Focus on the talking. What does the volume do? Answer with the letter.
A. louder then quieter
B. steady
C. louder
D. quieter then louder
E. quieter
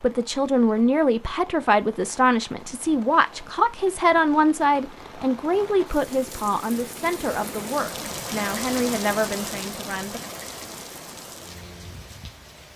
E.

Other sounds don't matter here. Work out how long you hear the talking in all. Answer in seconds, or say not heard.
10 s.